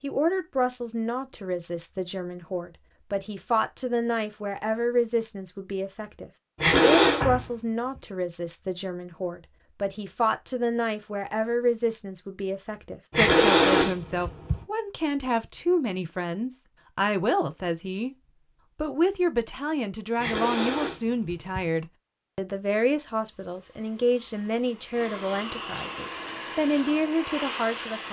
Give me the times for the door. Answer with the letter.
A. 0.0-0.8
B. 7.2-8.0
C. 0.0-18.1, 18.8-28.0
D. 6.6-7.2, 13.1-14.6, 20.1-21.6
B.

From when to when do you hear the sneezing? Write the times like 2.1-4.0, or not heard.
6.6-7.2, 13.1-14.6, 20.1-21.6.